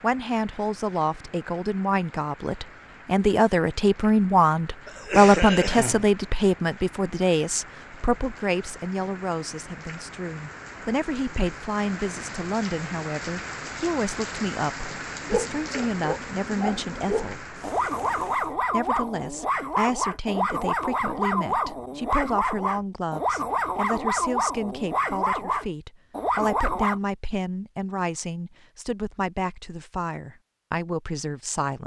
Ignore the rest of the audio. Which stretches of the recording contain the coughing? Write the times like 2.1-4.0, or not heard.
4.8-6.0.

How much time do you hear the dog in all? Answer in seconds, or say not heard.
12 s.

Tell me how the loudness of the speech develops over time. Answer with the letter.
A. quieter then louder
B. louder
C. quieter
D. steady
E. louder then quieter
C.